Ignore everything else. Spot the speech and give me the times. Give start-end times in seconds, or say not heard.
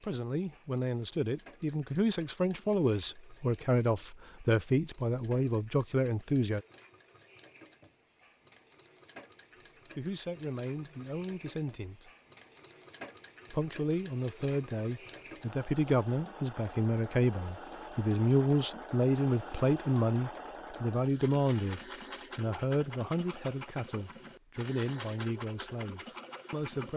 0.0-6.7, 9.9-12.1, 13.5-26.9.